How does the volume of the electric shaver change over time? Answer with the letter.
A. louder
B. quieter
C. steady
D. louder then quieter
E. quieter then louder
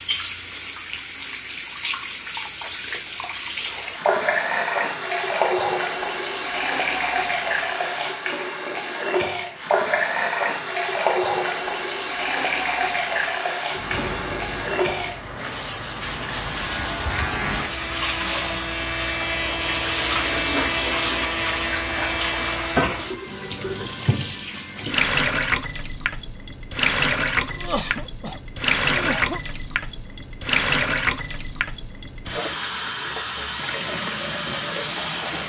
A.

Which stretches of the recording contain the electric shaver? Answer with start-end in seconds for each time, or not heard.
13.7-22.9.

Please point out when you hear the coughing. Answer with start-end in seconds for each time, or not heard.
27.4-29.4.